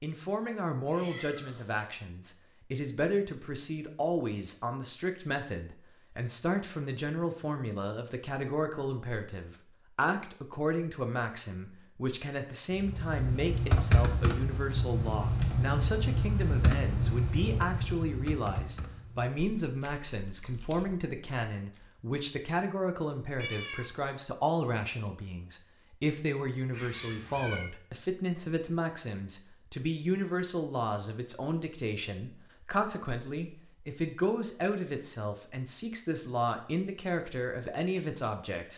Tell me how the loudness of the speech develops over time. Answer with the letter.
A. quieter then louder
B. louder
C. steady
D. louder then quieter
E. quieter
C.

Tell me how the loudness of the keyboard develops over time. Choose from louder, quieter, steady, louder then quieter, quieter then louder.
quieter.